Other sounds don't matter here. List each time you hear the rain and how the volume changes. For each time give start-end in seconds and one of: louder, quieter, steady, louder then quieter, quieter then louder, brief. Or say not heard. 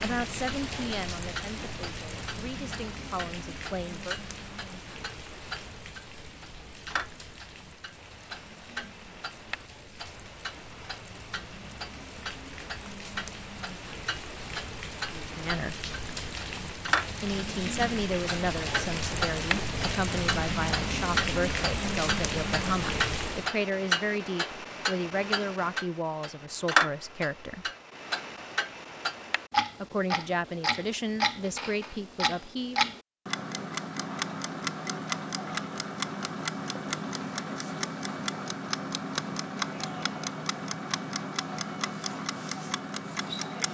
0.0-23.5 quieter then louder.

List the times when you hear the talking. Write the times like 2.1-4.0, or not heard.
0.0-4.2, 15.2-15.8, 17.2-27.7, 29.8-33.0.